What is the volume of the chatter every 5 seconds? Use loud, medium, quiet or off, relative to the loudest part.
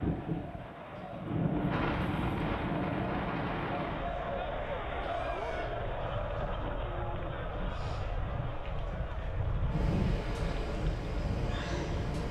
loud, loud, medium.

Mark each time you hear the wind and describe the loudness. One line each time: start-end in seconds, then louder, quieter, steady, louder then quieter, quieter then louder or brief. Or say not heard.
0.0-12.2 quieter then louder.